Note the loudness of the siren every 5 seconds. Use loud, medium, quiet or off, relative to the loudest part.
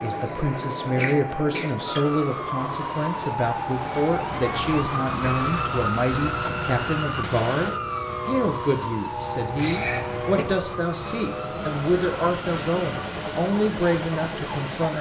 loud, loud, medium.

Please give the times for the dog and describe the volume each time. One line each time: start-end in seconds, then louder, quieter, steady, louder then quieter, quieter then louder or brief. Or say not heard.
not heard.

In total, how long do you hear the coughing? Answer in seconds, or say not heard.
3 s.